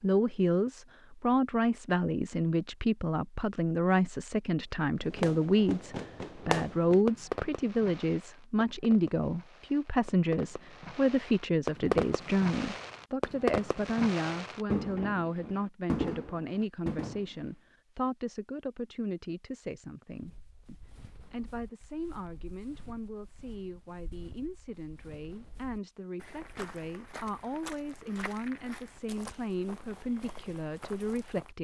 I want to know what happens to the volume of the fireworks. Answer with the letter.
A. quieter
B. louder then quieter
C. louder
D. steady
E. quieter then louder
E.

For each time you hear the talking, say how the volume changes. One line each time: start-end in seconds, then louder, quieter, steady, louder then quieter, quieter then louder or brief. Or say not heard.
0.0-31.5 quieter.